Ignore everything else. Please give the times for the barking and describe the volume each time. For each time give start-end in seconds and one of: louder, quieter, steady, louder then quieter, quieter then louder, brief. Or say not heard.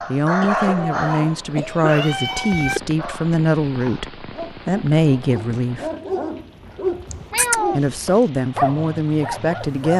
0.0-9.9 quieter then louder.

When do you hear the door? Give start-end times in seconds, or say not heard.
not heard.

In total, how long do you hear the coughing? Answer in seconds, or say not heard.
2 s.